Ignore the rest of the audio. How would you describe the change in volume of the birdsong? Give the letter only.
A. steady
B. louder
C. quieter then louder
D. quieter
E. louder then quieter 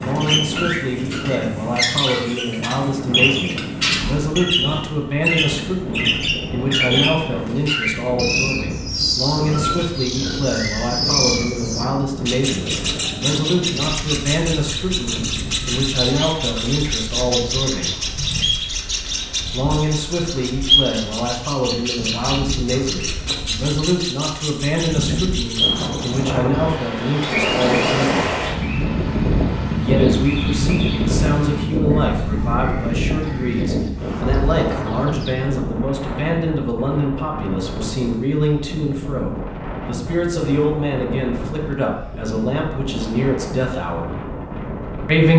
D.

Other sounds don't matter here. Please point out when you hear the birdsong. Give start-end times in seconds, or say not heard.
0.0-35.5.